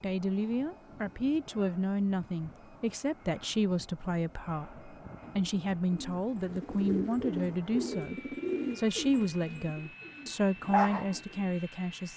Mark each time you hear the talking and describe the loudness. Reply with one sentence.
You can hear the talking from 0.0 to 12.1 s, at a steady volume.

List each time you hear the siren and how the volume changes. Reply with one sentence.
The siren can't be heard in this clip.